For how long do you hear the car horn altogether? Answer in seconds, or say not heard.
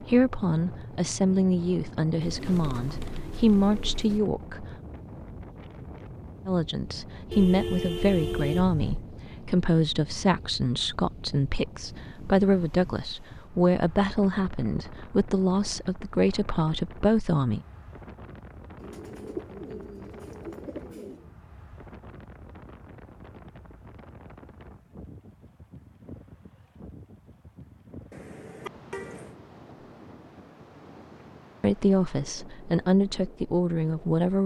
3 s.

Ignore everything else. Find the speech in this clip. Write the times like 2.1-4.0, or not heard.
0.0-4.8, 6.5-17.6, 31.6-34.4.